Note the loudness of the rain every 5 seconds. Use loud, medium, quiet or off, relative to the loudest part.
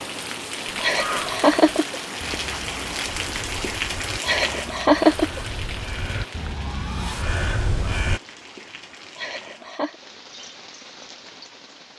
loud, medium, quiet.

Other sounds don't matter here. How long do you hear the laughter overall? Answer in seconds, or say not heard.
3 s.